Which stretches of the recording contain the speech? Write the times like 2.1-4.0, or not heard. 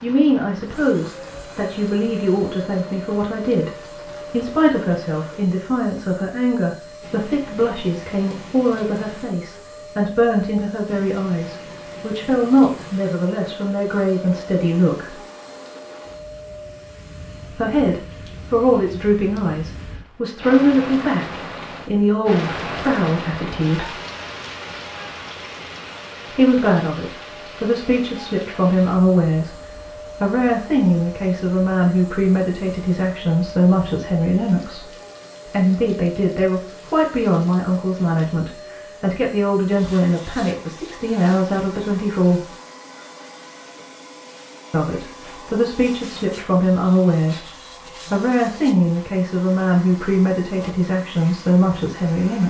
0.0-15.2, 17.5-23.9, 26.3-29.6, 30.2-42.5, 44.7-47.5, 48.1-52.4.